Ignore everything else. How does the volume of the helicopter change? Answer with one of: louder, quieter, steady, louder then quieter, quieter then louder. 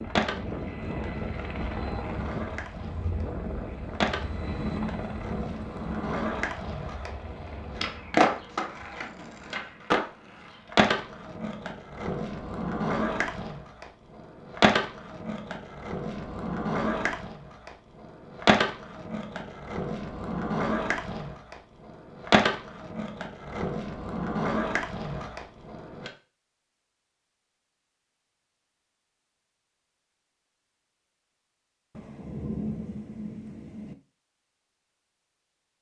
quieter.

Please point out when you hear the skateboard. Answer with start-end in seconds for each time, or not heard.
0.1-26.1.